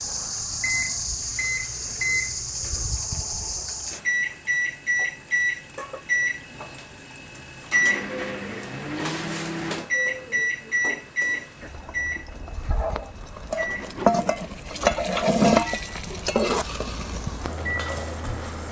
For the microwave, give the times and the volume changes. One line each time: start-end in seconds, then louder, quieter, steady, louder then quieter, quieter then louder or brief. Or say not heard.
0.0-18.6 quieter.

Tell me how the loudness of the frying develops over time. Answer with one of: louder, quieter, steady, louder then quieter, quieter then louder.
louder.